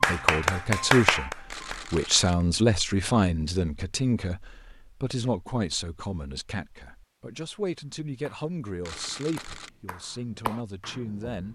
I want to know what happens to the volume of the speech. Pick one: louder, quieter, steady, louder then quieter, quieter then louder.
quieter.